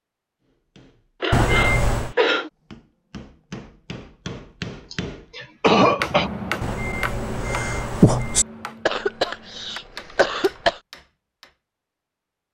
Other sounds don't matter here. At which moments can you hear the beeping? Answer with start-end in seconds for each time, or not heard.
1.3-2.1, 6.6-8.4.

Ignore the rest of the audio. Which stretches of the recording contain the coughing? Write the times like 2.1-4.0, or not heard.
1.2-2.5, 4.9-6.3, 8.8-10.8.